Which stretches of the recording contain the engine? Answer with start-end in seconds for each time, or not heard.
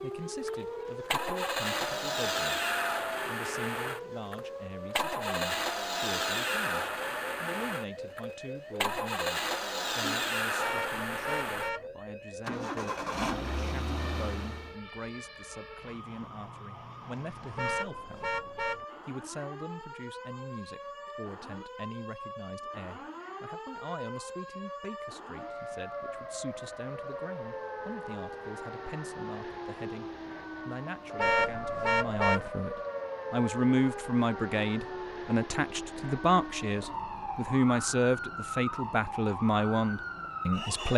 0.1-14.8.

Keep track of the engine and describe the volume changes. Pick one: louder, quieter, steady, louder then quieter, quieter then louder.
steady.